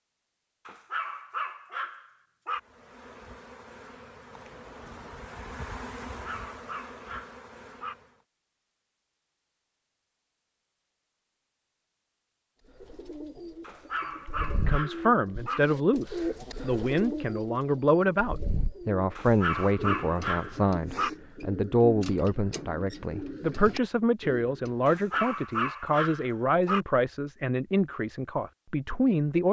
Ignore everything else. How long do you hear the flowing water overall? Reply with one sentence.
The flowing water can't be heard in this clip.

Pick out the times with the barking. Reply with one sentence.
The barking can be heard from 0.7 to 2.6 s, from 6.1 to 8.0 s, from 13.6 to 15.6 s, from 19.1 to 21.1 s and from 24.9 to 26.9 s.